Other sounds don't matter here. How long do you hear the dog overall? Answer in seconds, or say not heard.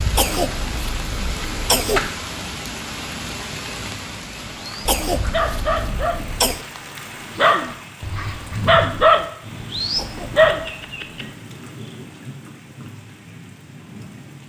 7 s.